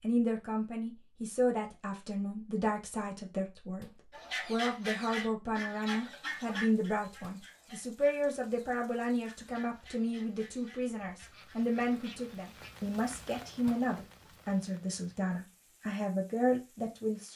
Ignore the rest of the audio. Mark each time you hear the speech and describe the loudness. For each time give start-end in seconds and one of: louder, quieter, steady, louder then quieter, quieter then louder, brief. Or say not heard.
0.0-17.3 steady.